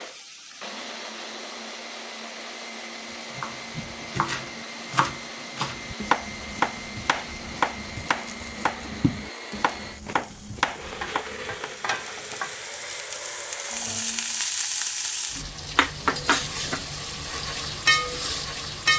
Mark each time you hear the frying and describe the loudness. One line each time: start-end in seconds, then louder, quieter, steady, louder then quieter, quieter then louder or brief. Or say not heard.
0.0-18.9 louder.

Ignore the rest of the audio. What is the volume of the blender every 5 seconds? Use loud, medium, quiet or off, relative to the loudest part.
loud, loud, loud, off.